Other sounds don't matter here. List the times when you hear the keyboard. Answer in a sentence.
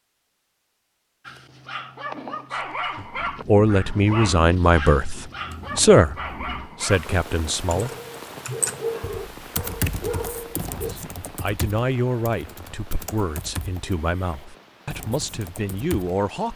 The keyboard can be heard from 7.5 to 16.1 s.